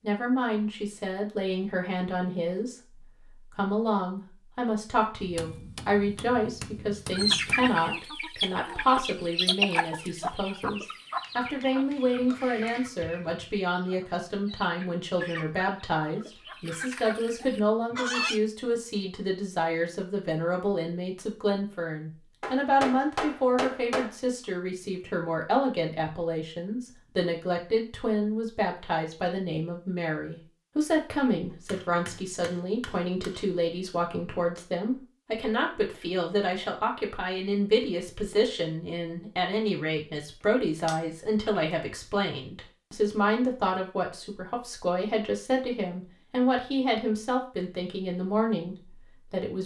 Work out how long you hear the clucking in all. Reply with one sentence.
The clucking can be heard for 11 seconds in total.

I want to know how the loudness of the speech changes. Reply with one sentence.
The loudness of the speech stays about the same.